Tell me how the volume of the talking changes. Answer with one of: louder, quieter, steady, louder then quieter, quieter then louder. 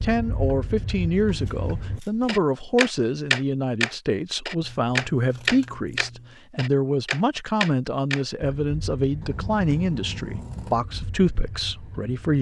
steady.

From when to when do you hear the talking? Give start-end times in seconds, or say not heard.
0.0-12.3.